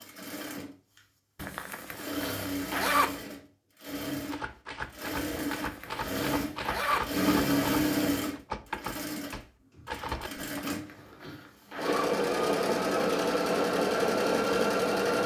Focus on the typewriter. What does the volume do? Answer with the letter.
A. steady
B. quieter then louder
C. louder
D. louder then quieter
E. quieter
A.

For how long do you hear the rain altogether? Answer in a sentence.
The rain can't be heard in this clip.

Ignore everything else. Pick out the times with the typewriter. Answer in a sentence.
The typewriter can be heard from 4.3 to 10.5 s.